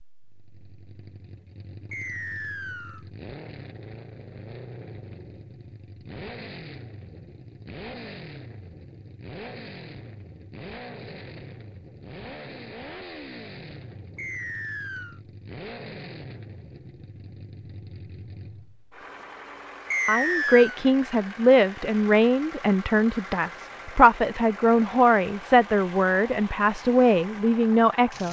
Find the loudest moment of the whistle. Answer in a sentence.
The volume of the whistle peaks at 20 seconds.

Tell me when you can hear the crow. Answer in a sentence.
You can't hear the crow here.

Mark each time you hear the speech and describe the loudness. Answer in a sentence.
You can hear the speech from 20.1 to 28.2 s, at a steady volume.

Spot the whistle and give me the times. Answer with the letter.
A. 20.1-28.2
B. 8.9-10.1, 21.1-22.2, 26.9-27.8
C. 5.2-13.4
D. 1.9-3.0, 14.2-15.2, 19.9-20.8
D.